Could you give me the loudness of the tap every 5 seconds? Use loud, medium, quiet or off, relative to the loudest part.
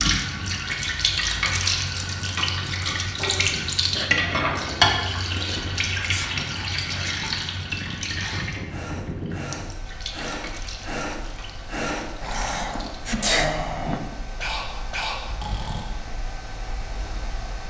loud, medium, quiet, off.